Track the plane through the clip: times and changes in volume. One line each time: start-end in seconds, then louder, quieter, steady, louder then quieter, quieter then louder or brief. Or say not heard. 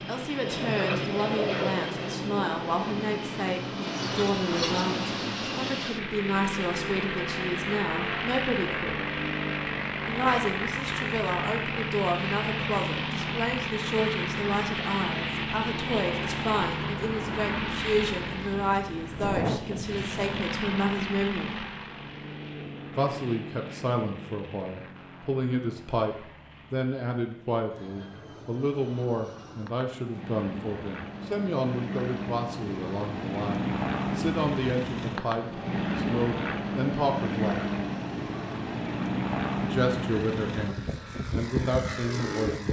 0.0-42.6 quieter then louder.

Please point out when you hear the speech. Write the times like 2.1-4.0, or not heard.
0.1-9.0, 10.1-21.7, 22.9-37.6, 39.6-42.6.